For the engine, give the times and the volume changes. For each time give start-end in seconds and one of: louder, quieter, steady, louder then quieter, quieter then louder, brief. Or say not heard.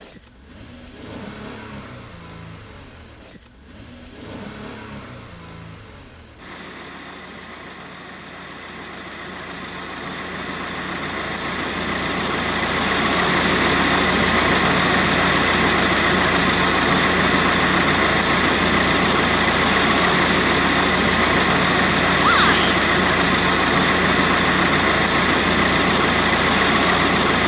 0.0-27.4 louder.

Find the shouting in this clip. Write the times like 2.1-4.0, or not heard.
22.2-22.8.